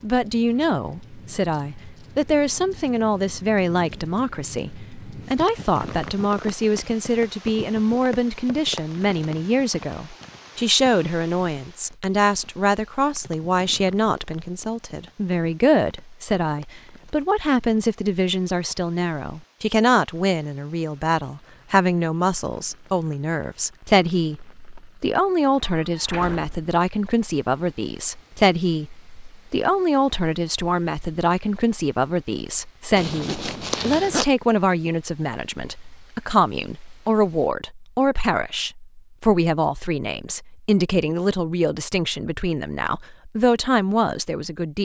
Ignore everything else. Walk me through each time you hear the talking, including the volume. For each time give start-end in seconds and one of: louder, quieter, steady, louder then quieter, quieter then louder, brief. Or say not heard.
0.0-44.8 steady.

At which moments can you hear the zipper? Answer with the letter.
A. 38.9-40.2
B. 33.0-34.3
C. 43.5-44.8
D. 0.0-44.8
B.